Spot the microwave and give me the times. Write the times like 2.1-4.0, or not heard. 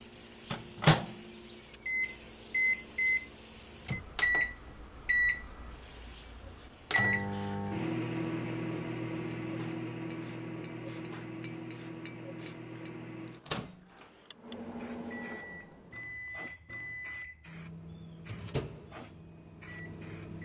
0.0-20.3.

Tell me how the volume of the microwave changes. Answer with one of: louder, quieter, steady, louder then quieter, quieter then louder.
quieter.